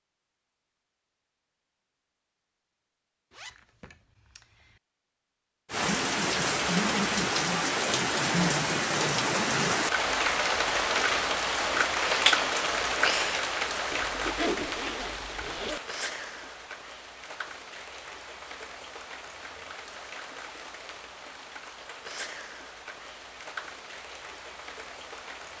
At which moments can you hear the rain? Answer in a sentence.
You can hear the rain from 5.7 to 25.5 s.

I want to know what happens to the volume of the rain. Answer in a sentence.
The loudness of the rain goes down.